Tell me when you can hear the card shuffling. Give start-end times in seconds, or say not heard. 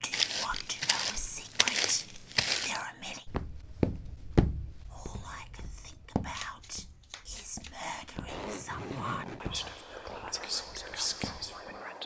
6.3-7.8.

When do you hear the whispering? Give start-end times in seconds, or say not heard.
0.0-3.2, 4.9-12.0.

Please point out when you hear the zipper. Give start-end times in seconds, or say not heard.
8.2-9.5.